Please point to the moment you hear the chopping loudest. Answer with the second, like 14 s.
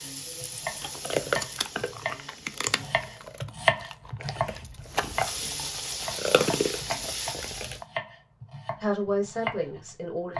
4 s.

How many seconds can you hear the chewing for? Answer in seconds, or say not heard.
7 s.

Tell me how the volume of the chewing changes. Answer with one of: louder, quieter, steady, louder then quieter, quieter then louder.
quieter then louder.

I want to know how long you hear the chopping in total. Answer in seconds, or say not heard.
10 s.